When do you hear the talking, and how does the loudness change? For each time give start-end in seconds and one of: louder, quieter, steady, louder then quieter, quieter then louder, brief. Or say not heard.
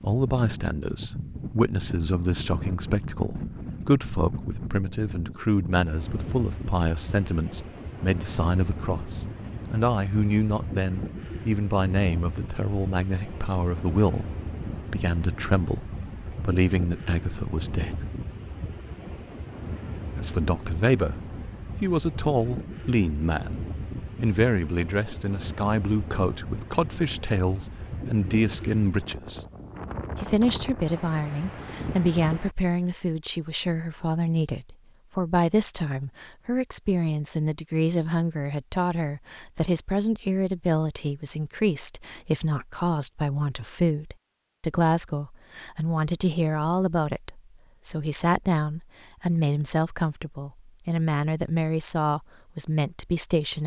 0.0-18.1 steady
20.1-29.4 steady
30.1-53.6 steady.